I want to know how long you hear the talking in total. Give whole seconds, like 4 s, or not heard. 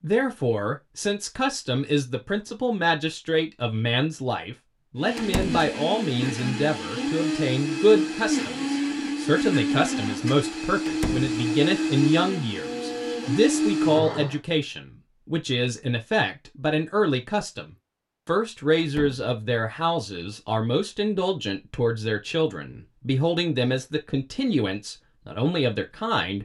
26 s.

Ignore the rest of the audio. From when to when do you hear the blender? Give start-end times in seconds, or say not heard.
5.0-14.4.